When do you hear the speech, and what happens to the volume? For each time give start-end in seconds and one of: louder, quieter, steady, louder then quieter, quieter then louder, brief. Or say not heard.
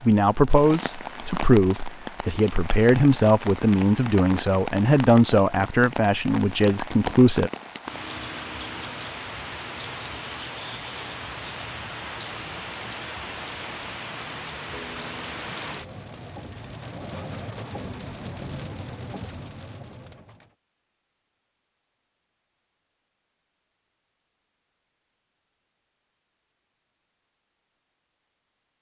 0.0-7.5 steady.